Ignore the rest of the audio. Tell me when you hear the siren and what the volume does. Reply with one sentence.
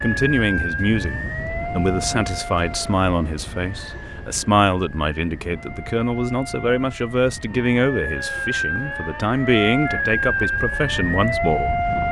The siren can be heard from 0.0 to 12.0 s, getting quieter then louder.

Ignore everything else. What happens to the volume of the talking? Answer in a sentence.
The loudness of the talking stays about the same.